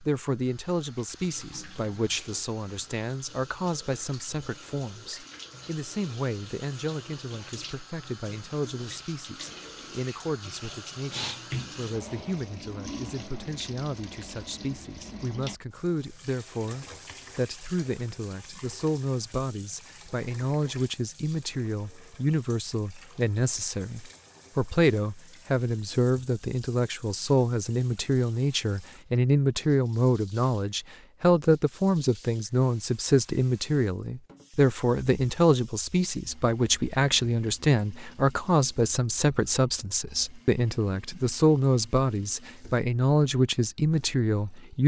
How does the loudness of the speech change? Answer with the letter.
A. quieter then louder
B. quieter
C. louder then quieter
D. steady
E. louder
E.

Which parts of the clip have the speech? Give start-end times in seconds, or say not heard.
0.0-44.8.